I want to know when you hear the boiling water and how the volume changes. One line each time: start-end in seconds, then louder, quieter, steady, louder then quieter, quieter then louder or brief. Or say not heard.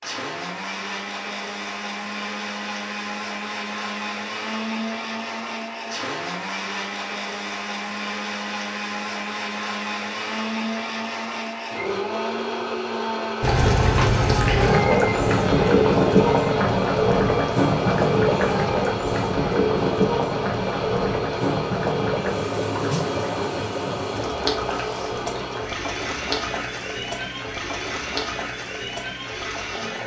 13.4-30.0 quieter.